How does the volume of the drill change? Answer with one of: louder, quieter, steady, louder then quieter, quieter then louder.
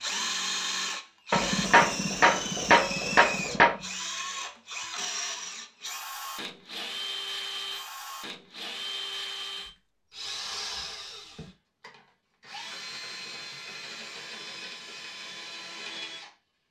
quieter.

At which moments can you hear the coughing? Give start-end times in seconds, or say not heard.
not heard.